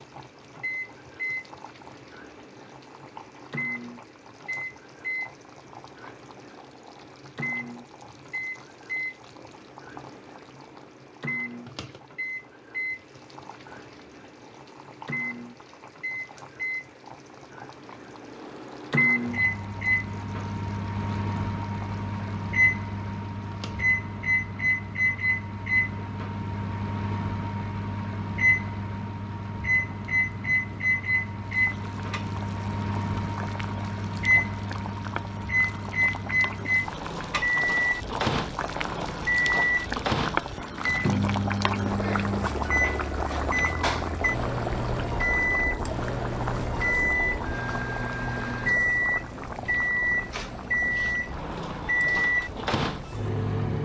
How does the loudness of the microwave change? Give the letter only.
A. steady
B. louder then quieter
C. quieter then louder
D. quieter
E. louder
E.